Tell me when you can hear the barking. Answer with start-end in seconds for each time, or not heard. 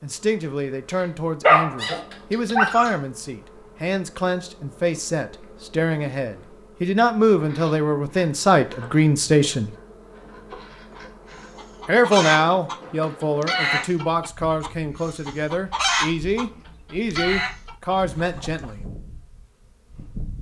1.4-2.9.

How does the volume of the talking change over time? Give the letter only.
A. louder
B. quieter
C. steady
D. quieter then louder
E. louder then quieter
E.